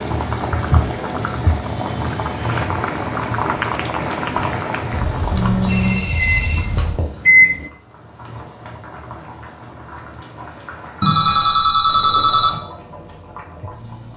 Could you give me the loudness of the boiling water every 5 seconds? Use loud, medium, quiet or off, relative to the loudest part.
loud, medium, quiet.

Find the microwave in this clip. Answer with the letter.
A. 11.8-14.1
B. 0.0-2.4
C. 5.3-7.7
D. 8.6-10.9
C.